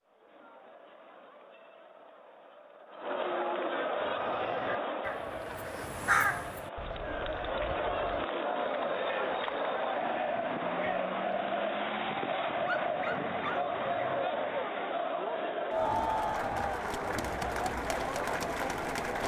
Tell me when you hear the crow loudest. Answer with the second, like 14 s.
6 s.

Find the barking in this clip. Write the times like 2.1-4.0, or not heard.
12.6-14.2.